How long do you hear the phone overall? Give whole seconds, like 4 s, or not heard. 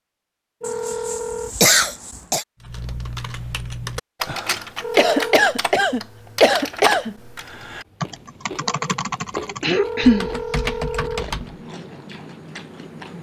3 s.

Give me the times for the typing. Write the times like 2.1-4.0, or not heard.
2.6-11.6.